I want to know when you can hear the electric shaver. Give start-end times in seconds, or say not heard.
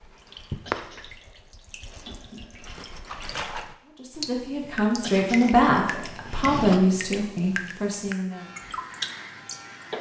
8.2-9.9.